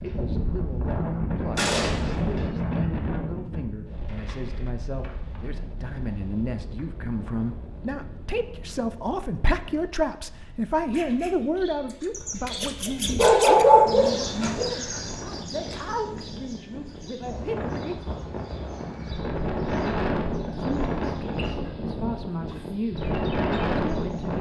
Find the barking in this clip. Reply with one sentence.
You can hear the barking from 12.1 to 14.7 s.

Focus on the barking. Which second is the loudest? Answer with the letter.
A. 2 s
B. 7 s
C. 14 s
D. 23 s
C.